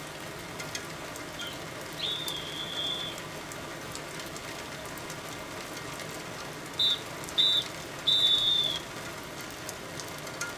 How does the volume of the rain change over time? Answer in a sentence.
The loudness of the rain stays about the same.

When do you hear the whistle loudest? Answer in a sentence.
The volume of the whistle peaks at 8 seconds.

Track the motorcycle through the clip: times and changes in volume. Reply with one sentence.
You can't hear the motorcycle here.